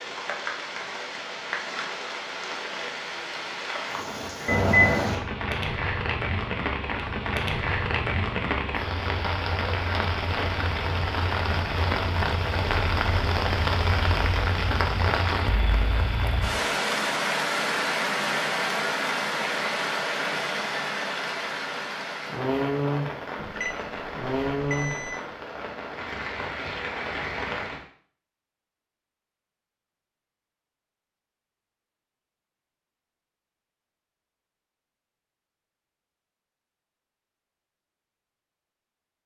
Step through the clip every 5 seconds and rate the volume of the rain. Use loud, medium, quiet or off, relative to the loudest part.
medium, loud, loud, loud, loud, medium, off, off.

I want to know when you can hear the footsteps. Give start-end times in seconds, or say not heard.
not heard.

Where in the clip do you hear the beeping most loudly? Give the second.
5 s.